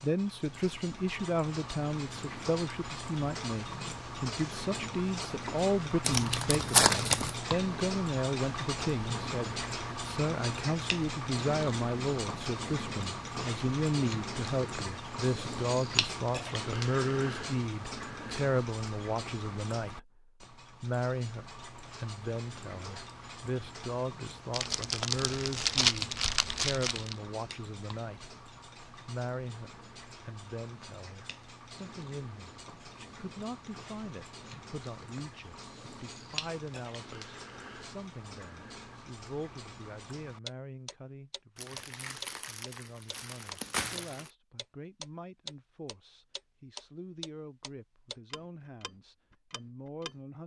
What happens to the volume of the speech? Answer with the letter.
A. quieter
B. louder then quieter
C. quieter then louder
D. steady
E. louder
A.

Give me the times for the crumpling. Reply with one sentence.
The crumpling can be heard from 6.0 to 7.3 s, from 24.5 to 27.1 s and from 41.5 to 44.3 s.